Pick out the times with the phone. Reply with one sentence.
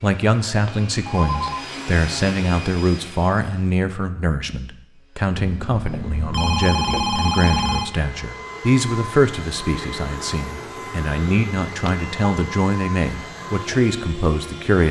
You can hear the phone from 0.5 to 1.6 s, from 5.3 to 8.0 s and from 11.7 to 12.1 s.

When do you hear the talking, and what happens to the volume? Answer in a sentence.
The talking can be heard from 0.0 to 14.8 s, at a steady volume.